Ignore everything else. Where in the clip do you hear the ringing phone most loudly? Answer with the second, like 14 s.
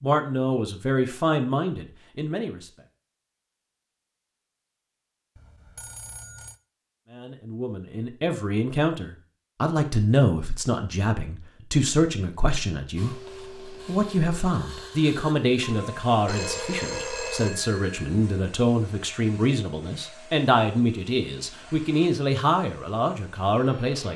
17 s.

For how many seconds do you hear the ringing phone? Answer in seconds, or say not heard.
4 s.